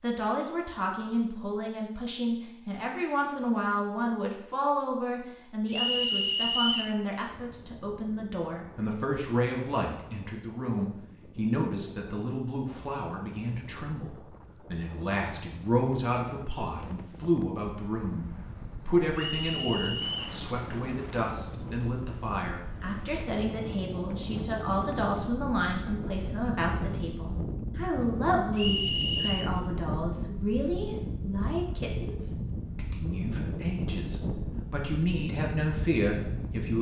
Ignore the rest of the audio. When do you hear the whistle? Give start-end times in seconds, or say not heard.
5.7-7.0, 19.1-20.4, 28.6-29.5.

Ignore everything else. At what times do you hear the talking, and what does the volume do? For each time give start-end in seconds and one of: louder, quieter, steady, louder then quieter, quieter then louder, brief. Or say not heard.
0.0-36.7 steady.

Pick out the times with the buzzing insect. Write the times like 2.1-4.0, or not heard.
not heard.